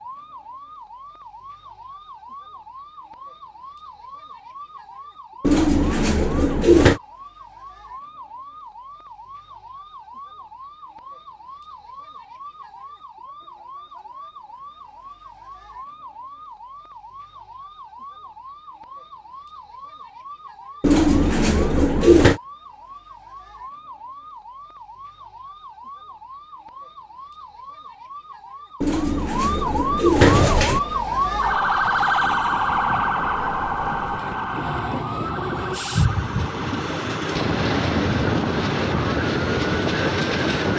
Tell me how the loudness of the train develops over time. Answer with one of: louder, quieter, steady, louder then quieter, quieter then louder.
louder.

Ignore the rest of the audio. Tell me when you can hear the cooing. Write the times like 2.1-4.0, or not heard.
5.4-7.0, 20.8-22.4, 28.8-30.8.